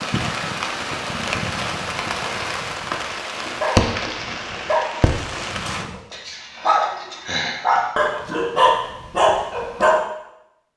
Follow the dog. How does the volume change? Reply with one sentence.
The loudness of the dog goes down, then up.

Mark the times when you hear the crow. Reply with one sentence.
The crow can't be heard in this clip.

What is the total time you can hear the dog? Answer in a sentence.
You can hear the dog for 7 seconds altogether.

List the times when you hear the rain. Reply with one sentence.
You can hear the rain from 0.0 to 5.8 s.